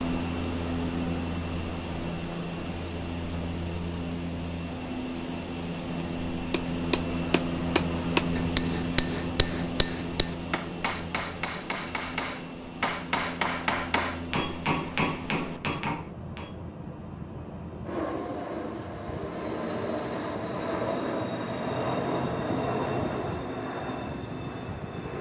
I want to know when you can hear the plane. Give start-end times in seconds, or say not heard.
0.0-25.1.